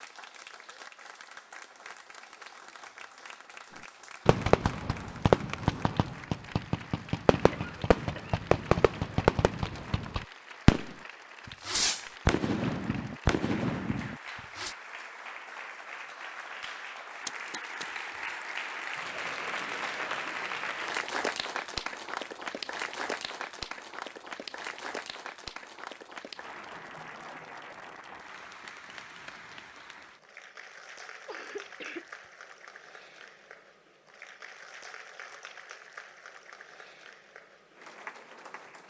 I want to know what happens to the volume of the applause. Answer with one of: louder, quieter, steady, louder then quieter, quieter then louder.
louder then quieter.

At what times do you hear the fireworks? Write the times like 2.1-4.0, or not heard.
4.2-14.8.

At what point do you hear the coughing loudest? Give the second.
32 s.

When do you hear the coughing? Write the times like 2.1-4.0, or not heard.
7.3-8.5, 31.2-32.0.